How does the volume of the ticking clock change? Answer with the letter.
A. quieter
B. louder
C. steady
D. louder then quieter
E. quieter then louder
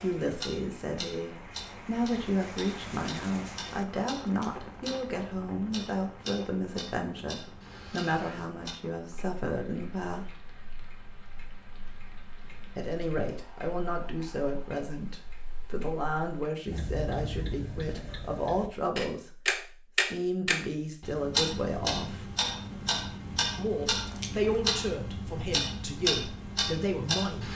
E.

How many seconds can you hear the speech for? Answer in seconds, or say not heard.
24 s.